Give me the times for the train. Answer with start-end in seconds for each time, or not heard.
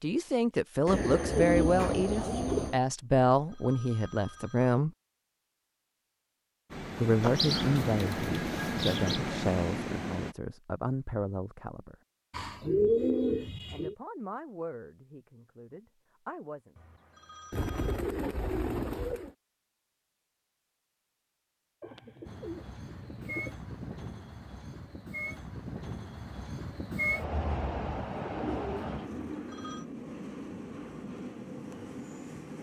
6.7-10.3, 22.2-32.5.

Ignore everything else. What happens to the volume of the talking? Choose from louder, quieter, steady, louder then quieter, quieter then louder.
quieter.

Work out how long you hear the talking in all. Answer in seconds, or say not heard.
13 s.